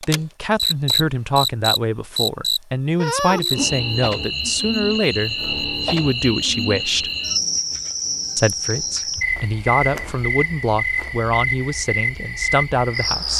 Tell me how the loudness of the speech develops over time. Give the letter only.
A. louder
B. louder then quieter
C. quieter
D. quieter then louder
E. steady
E.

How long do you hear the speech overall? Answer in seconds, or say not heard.
12 s.